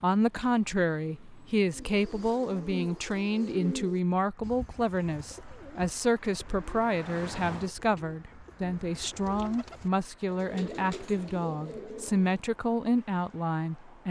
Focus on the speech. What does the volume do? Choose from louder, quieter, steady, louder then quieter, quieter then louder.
steady.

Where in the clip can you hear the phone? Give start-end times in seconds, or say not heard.
not heard.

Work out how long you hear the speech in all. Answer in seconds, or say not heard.
14 s.